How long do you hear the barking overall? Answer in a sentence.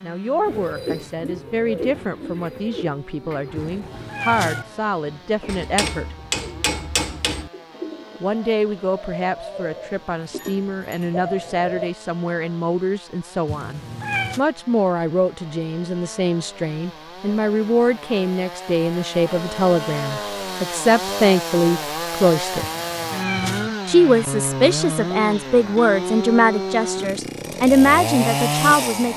The barking can't be heard in this clip.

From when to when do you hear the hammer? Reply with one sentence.
You can hear the hammer from 5.5 to 7.5 s.